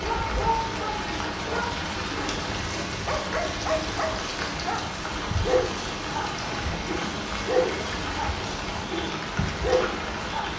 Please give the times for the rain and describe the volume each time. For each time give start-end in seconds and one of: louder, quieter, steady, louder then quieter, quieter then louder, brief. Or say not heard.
0.0-10.5 steady.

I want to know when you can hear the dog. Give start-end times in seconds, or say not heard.
0.0-10.5.